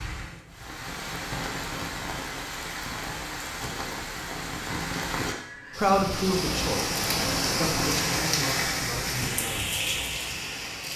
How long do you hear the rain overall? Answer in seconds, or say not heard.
11 s.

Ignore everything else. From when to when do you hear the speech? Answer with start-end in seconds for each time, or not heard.
5.8-9.8.